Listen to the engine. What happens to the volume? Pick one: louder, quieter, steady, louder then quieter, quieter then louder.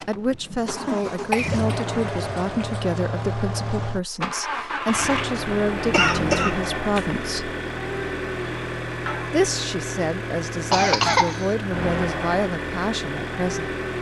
steady.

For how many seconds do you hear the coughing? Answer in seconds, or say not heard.
4 s.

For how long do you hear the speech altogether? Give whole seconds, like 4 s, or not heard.
12 s.